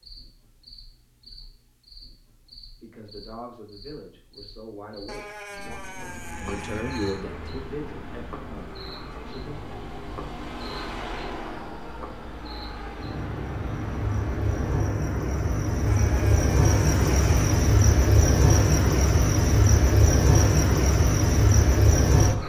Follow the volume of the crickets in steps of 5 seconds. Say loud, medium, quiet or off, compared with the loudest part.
quiet, quiet, quiet, loud, loud.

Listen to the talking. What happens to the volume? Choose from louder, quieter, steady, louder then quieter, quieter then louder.
louder then quieter.